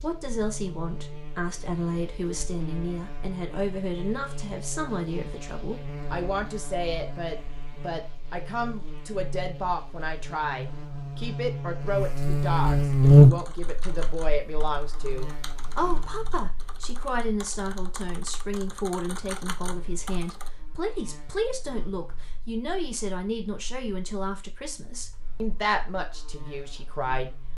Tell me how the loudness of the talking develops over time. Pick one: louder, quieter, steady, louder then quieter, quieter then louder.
steady.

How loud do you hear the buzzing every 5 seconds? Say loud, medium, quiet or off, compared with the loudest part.
quiet, quiet, loud, quiet, quiet, quiet.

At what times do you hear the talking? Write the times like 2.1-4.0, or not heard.
0.0-27.4.